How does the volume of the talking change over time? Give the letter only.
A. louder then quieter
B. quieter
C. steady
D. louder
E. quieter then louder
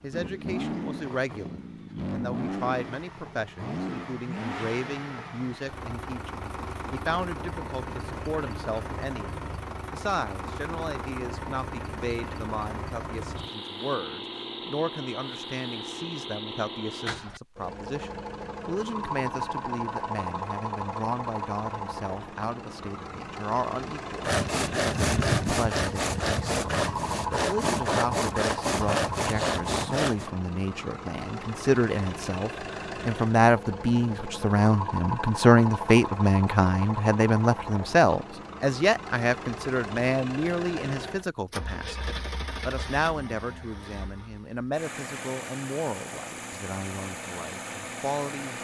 A.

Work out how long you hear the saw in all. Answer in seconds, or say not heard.
6 s.